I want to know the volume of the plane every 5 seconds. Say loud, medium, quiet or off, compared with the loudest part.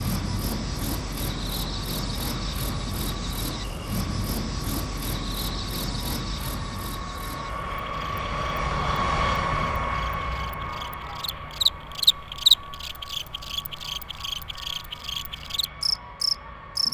quiet, loud, medium, quiet.